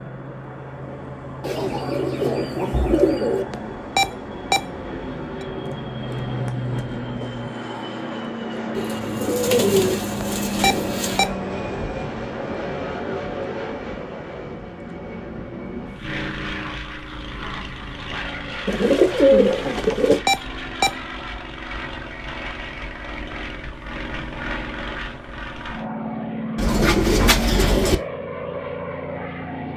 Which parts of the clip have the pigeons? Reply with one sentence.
You can hear the pigeons from 1.4 to 3.5 s, from 8.8 to 11.2 s, from 18.6 to 20.2 s and from 26.6 to 27.9 s.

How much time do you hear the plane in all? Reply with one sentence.
You can hear the plane for 30 seconds altogether.